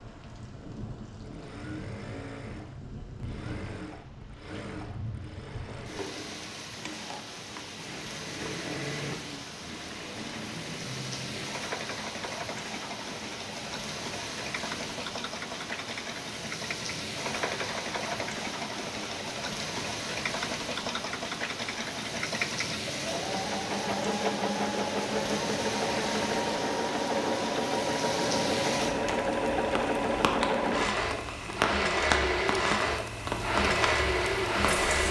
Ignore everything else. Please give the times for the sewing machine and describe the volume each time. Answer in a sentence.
You can hear the sewing machine from 0.0 to 35.0 s, getting louder.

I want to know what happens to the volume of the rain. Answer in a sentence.
The loudness of the rain goes up.